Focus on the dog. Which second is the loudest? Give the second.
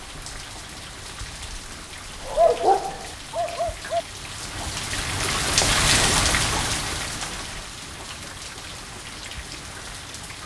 3 s.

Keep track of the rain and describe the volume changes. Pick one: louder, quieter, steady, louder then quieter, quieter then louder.
louder then quieter.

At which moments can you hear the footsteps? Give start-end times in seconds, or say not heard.
not heard.